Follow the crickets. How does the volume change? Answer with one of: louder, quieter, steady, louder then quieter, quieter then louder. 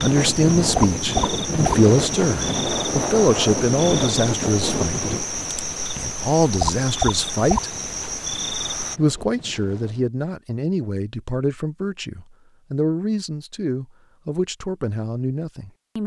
steady.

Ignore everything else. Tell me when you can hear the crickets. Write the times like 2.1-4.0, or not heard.
0.0-9.0.